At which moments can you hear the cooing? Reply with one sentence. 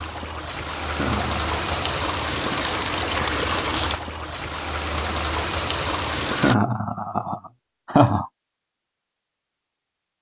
You can't hear the cooing here.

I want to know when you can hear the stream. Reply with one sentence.
The stream can be heard from 0.0 to 6.5 s.